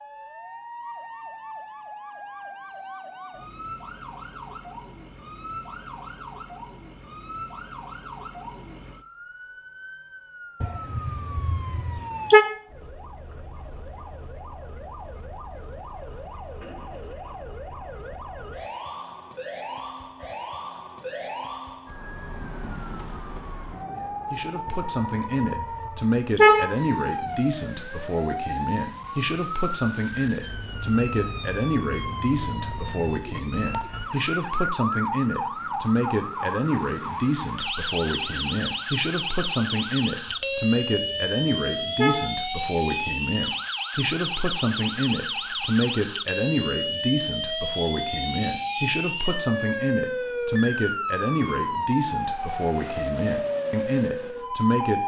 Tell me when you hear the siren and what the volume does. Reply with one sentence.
You can hear the siren from 0.0 to 55.0 s, getting louder.